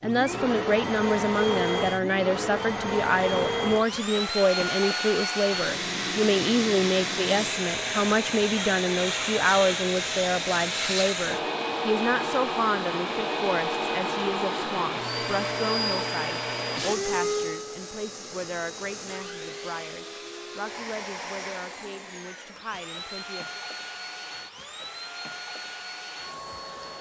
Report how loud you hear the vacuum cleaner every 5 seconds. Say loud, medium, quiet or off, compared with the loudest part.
loud, loud, loud, loud, medium, medium.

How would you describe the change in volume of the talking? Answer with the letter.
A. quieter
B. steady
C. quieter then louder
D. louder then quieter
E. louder
A.